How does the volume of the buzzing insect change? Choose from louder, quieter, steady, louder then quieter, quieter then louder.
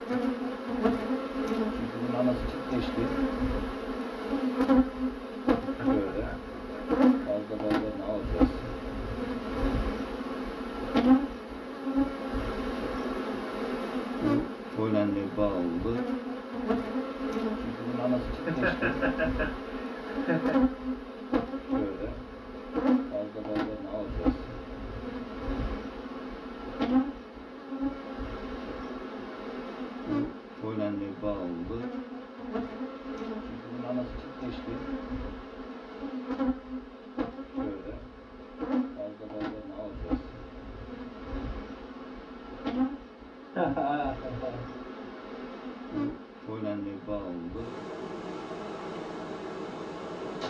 quieter.